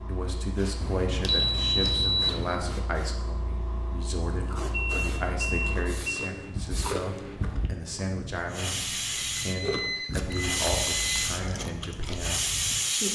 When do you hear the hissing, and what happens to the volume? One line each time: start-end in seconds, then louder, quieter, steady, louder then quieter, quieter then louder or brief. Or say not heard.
0.0-13.1 louder.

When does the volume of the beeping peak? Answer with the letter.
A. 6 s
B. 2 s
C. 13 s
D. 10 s
B.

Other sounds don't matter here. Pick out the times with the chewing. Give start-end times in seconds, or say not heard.
4.2-12.8.